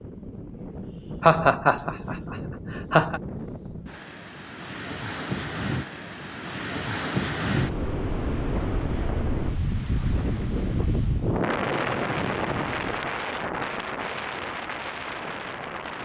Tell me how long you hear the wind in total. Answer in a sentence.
You can hear the wind for 16 seconds altogether.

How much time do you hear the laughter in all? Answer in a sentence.
The laughter can be heard for 2 seconds in total.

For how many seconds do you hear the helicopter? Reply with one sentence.
The helicopter can't be heard in this clip.